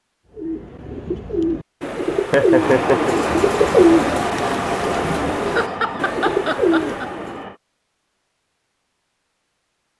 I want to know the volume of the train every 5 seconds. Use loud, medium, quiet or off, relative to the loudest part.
loud, medium.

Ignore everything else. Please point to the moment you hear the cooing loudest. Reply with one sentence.
The loudest moment of the cooing is at 4 seconds.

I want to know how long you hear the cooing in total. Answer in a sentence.
You can hear the cooing for 7 seconds altogether.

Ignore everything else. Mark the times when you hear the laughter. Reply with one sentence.
You can hear the laughter from 2.3 to 3.1 s and from 5.5 to 7.0 s.